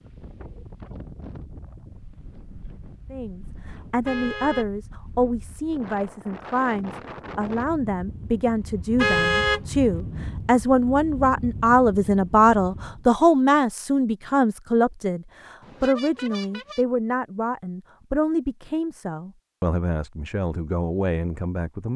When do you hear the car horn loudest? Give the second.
9 s.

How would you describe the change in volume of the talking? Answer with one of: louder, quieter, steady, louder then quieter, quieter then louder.
louder then quieter.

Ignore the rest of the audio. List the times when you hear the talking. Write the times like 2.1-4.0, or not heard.
3.1-21.9.